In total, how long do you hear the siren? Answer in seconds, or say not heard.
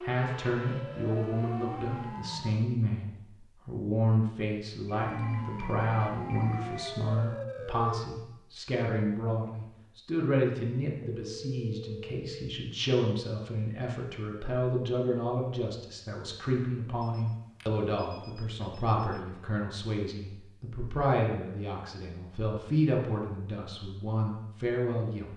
6 s.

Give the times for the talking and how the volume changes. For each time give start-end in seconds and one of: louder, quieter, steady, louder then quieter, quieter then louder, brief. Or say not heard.
0.0-25.3 steady.